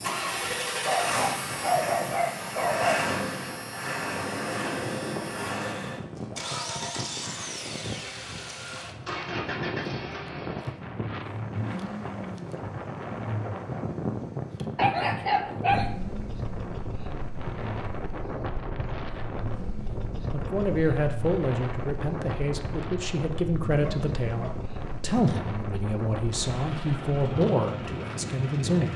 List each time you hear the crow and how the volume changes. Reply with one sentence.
You can't hear the crow here.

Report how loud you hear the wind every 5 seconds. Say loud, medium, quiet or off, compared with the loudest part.
medium, loud, loud, loud, loud, loud.